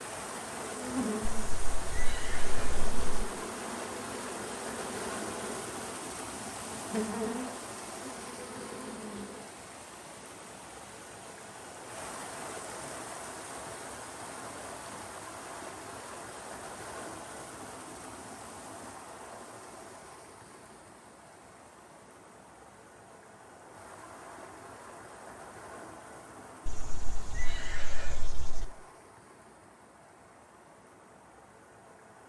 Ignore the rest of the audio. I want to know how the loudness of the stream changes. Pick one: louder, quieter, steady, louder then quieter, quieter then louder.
quieter.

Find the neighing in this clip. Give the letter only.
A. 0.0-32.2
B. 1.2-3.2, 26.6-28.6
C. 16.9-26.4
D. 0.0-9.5
B.